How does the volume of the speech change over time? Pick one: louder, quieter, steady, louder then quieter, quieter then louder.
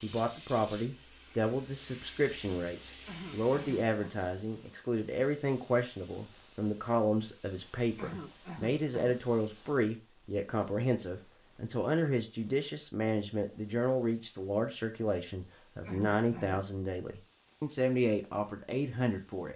steady.